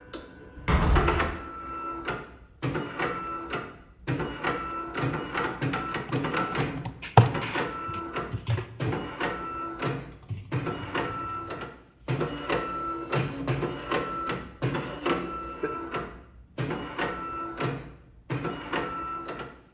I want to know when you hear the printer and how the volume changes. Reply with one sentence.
You can hear the printer from 0.0 to 19.5 s, at a steady volume.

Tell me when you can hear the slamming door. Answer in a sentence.
You can hear the slamming door from 0.6 to 1.3 s.